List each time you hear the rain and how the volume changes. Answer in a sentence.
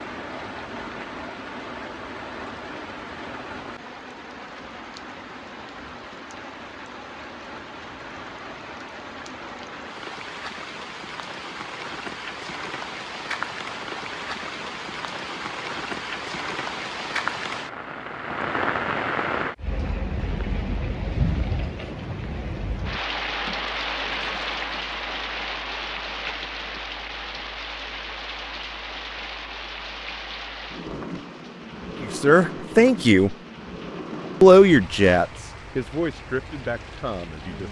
The rain can be heard from 0.0 to 37.6 s, getting louder then quieter.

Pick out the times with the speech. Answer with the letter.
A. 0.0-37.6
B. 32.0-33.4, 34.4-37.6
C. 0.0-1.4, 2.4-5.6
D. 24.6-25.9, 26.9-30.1
B.